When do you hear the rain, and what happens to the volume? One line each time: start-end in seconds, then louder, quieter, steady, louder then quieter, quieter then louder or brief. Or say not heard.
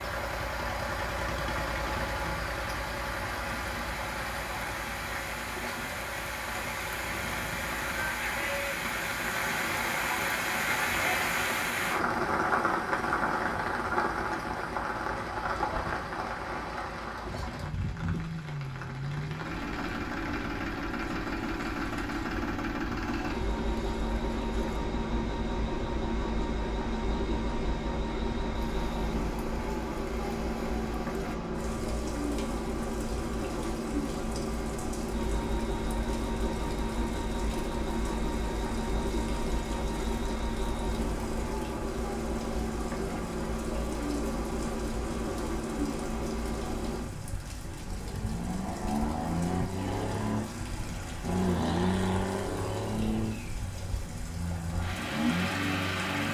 0.0-56.2 quieter.